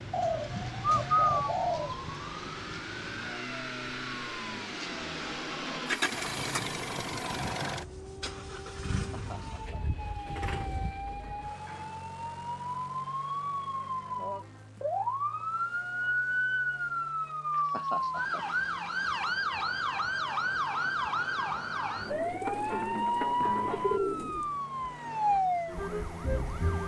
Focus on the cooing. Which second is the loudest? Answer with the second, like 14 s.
1 s.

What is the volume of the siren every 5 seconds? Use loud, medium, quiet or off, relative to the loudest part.
medium, quiet, medium, loud, loud, loud.